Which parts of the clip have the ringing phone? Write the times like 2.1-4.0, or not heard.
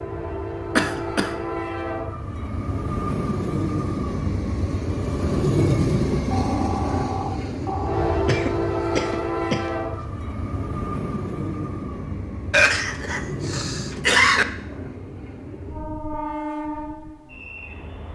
6.2-8.1.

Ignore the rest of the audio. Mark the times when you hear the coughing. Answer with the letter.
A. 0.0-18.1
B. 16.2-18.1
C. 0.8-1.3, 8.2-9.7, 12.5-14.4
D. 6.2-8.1
C.